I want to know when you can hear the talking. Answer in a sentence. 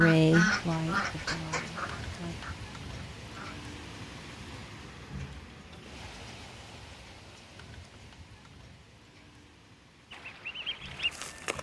The talking can be heard from 0.0 to 2.4 s.